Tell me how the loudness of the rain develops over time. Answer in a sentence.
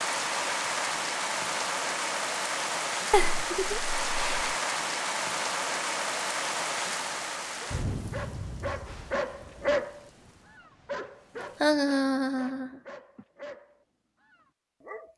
The loudness of the rain goes down.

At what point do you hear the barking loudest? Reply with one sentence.
The volume of the barking peaks at 10 seconds.